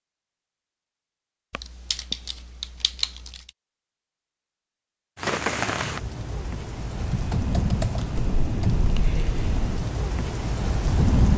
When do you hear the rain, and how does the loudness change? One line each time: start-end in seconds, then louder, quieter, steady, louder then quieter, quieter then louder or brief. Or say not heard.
5.2-11.3 steady.